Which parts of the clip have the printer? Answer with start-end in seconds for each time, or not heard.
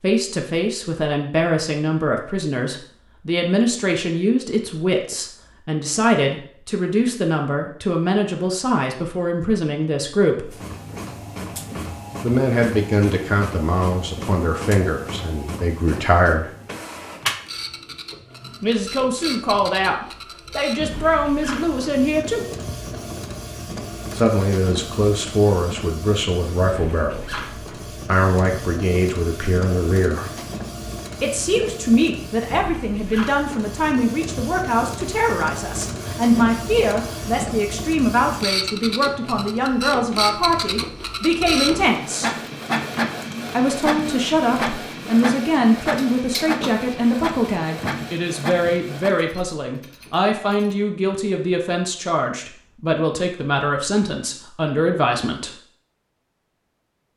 10.4-49.2.